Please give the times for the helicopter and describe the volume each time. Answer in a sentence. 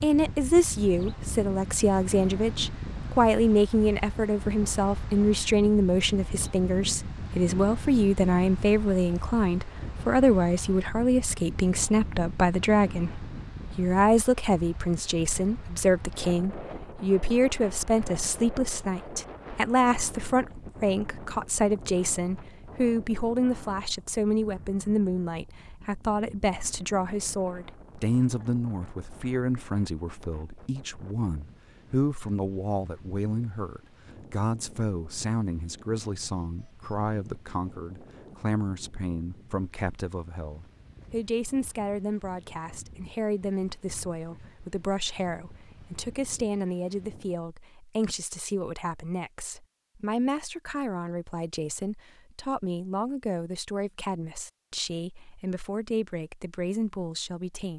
The helicopter can't be heard in this clip.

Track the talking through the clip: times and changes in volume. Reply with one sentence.
The talking can be heard from 0.0 to 57.7 s, getting quieter.